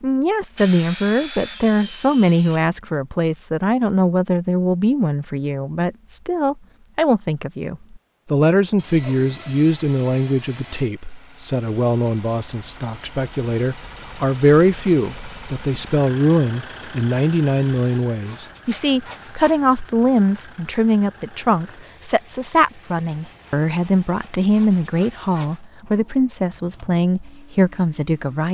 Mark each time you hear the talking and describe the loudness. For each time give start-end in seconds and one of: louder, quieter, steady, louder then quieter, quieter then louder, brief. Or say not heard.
0.0-28.4 steady.